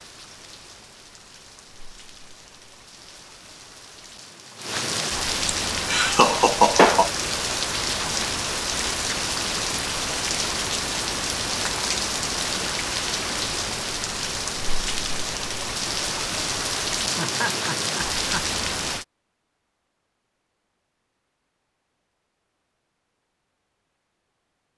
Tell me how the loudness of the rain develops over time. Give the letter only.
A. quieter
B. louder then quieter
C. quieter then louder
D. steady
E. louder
E.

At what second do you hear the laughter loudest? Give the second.
7 s.